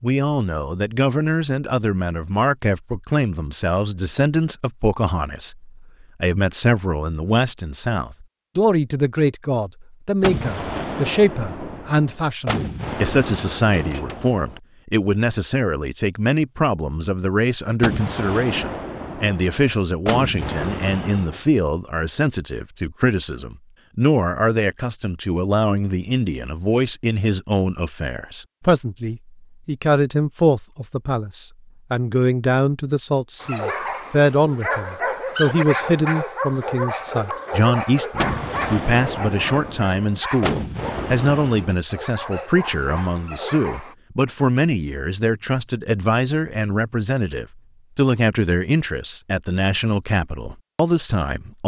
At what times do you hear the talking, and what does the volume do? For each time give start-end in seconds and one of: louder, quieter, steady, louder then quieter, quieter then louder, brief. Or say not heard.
0.0-51.6 steady.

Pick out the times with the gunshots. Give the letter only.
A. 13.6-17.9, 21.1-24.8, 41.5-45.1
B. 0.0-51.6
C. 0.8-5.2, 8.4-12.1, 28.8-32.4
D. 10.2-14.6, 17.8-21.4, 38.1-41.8
D.